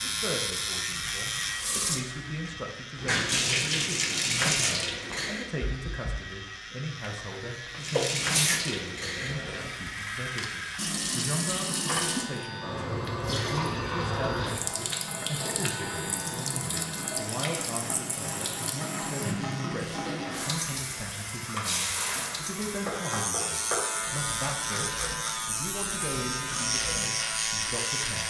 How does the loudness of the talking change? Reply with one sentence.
The volume of the talking stays about the same.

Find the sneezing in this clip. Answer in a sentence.
You can hear the sneezing from 7.0 to 8.8 s.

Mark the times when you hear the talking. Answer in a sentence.
You can hear the talking from 0.0 to 28.2 s.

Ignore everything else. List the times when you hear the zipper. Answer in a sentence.
You can't hear the zipper here.